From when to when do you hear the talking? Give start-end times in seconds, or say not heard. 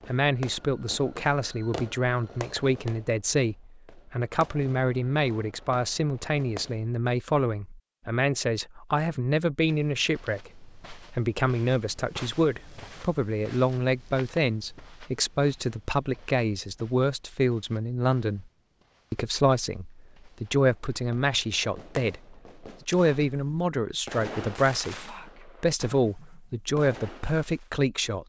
0.1-18.4, 19.1-28.2.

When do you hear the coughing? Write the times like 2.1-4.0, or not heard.
not heard.